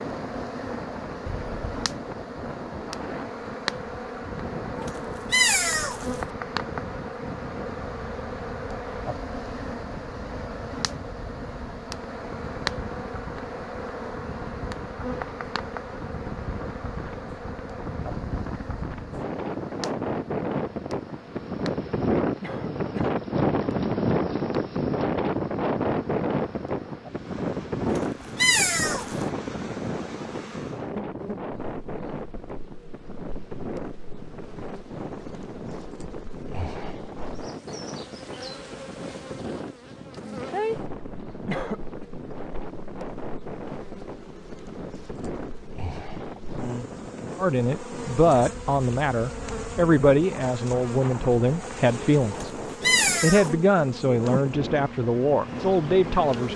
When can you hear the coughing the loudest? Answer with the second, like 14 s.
42 s.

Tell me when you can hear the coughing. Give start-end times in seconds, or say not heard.
1.2-1.9, 22.4-23.2, 41.5-42.0.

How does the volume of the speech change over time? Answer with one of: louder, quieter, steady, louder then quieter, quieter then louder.
steady.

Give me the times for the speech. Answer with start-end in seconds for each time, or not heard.
47.4-52.5, 53.2-56.5.